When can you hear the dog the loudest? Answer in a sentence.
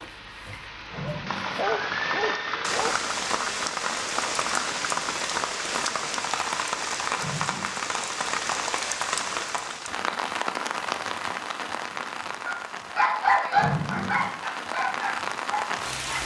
The volume of the dog peaks at 13 seconds.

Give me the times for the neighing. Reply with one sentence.
The neighing can be heard from 0.8 to 2.6 s, from 7.2 to 7.8 s and from 13.5 to 14.3 s.